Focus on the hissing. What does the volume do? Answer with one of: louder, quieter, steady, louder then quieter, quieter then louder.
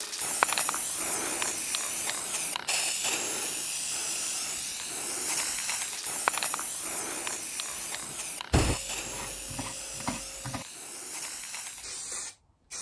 quieter.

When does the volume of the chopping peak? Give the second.
10 s.